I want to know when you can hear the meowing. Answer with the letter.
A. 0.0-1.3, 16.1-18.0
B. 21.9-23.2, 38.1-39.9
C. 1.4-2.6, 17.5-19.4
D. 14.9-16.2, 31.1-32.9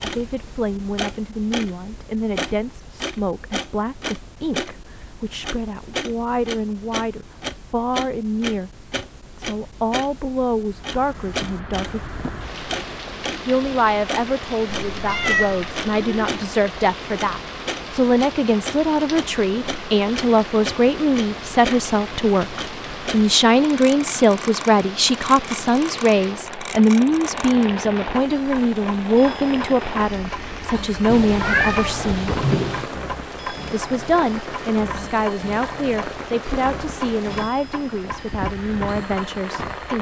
D.